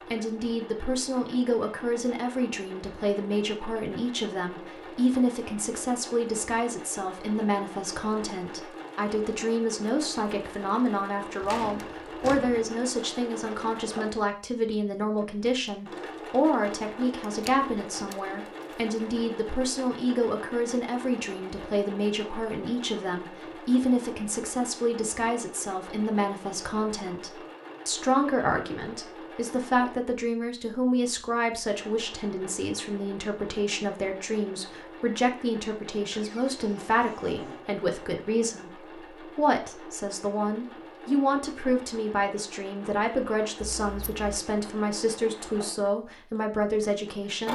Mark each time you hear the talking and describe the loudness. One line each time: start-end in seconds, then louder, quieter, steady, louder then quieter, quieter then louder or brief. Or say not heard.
0.1-47.5 steady.